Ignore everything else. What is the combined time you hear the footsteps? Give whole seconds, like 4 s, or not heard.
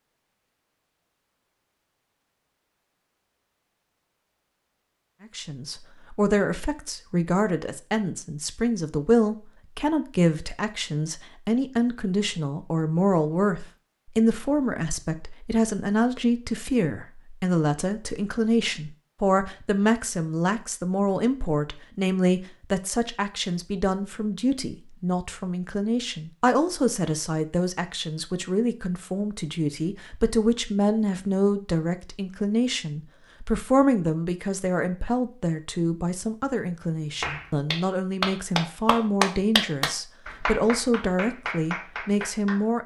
not heard.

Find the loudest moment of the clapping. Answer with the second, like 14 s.
39 s.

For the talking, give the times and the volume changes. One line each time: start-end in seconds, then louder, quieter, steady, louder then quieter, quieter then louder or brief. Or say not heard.
5.2-42.8 steady.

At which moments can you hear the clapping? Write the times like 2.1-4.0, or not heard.
37.2-42.6.